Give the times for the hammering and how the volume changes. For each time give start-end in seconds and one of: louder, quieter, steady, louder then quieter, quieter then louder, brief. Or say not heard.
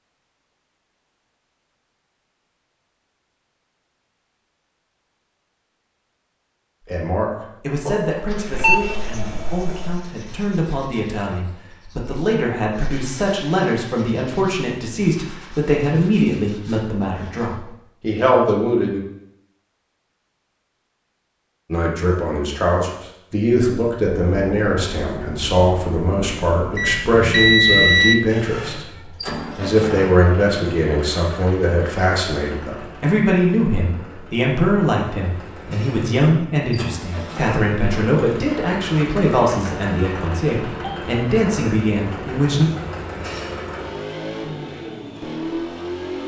not heard.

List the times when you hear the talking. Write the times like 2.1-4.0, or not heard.
6.8-19.0, 21.7-42.7.